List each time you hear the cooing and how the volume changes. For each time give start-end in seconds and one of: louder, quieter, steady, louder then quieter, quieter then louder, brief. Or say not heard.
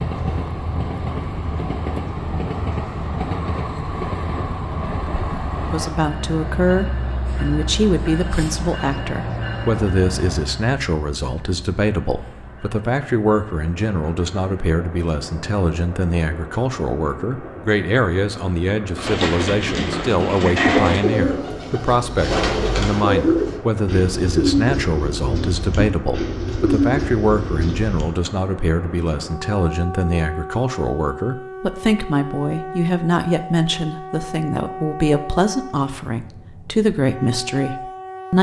18.9-28.1 steady.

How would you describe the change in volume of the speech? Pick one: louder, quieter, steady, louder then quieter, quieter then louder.
steady.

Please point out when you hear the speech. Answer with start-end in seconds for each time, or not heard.
5.7-38.3.